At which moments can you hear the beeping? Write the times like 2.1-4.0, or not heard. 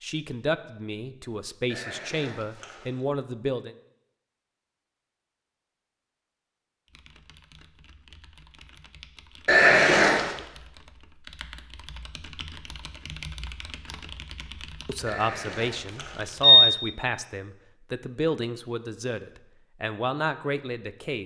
1.7-2.9, 9.4-10.3, 15.1-16.6.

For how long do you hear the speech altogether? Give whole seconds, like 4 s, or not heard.
10 s.